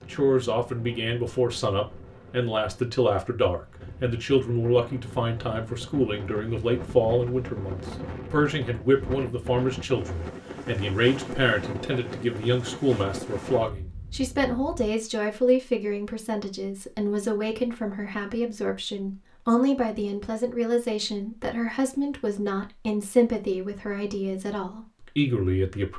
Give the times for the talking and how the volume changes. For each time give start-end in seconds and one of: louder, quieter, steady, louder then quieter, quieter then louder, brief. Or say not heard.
0.0-25.9 steady.